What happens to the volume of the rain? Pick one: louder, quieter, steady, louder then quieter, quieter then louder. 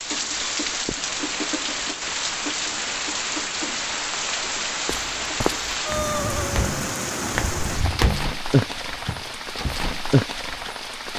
steady.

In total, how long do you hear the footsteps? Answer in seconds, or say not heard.
5 s.